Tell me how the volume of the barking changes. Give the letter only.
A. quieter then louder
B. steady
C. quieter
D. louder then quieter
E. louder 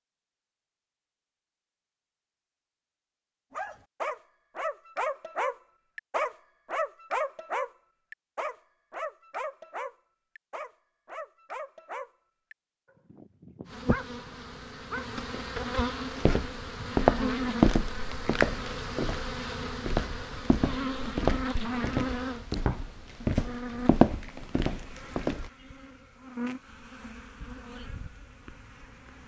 C.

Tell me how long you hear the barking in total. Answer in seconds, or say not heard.
12 s.